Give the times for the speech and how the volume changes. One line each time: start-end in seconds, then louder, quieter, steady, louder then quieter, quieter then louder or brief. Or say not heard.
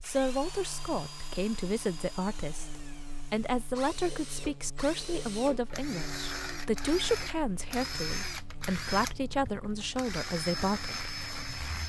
0.0-11.0 steady.